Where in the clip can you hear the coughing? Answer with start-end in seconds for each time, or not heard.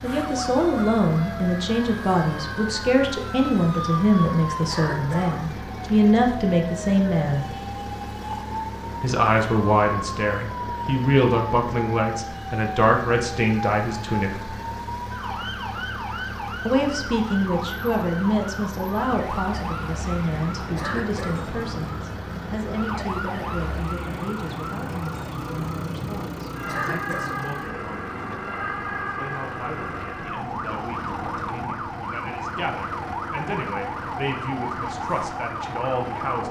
4.7-5.3, 20.8-21.4, 26.6-27.4.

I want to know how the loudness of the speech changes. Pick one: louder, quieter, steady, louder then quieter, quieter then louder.
quieter.